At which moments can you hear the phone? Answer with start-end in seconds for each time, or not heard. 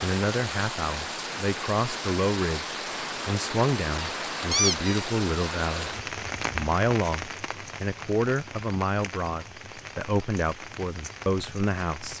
not heard.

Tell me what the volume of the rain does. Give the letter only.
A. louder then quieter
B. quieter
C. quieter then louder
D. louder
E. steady
B.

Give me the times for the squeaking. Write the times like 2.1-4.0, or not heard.
4.0-5.0.